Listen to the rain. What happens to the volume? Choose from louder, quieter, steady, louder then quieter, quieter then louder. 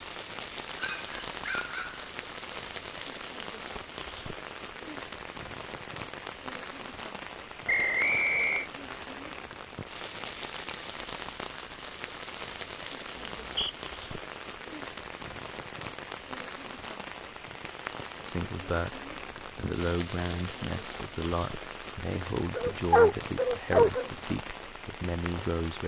steady.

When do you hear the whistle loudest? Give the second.
8 s.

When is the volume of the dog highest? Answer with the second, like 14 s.
23 s.